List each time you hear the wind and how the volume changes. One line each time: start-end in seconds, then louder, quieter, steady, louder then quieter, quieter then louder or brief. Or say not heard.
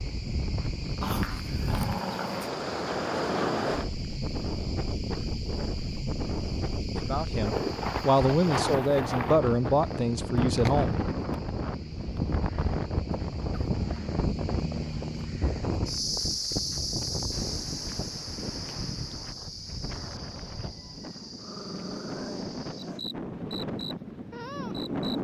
0.0-25.1 quieter.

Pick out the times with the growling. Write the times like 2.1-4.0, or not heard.
1.0-2.5, 13.7-14.2, 21.4-23.0.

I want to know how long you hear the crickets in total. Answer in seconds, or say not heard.
25 s.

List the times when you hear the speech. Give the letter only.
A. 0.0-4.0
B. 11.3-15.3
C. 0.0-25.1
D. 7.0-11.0
D.